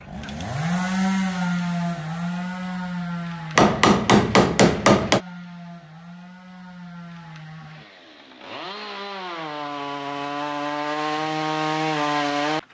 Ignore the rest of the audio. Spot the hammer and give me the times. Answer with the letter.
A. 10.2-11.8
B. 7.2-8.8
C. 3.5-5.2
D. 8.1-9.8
C.